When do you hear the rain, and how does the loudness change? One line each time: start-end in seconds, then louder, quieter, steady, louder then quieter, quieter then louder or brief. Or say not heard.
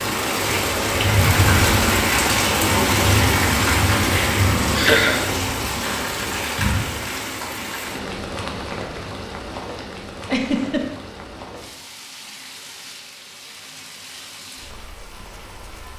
0.0-15.9 quieter.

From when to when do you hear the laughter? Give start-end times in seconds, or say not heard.
4.8-5.2, 10.2-10.8.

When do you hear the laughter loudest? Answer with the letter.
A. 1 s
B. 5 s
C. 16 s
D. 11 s
B.